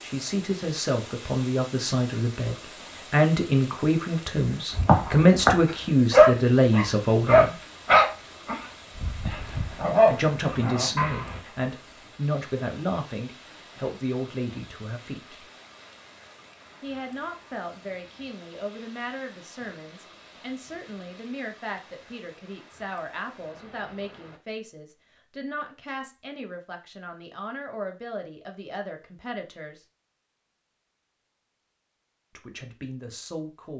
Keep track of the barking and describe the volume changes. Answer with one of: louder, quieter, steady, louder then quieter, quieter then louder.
quieter then louder.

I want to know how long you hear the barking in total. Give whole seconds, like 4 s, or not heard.
7 s.